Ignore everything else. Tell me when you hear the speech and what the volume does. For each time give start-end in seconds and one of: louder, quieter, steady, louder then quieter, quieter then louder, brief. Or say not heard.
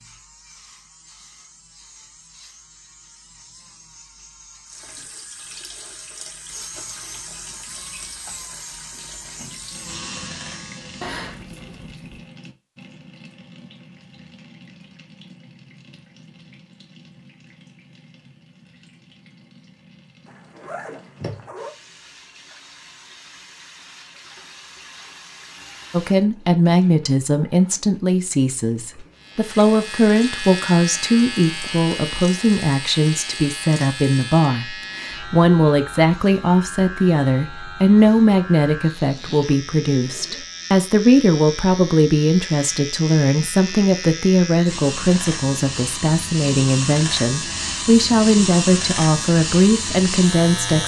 25.9-50.8 steady.